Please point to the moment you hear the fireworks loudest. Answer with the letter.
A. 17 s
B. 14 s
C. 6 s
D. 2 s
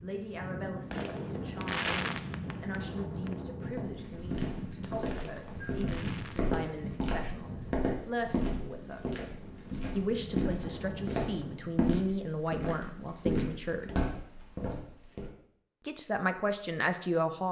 D.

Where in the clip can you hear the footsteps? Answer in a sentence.
The footsteps can be heard from 3.7 to 15.3 s.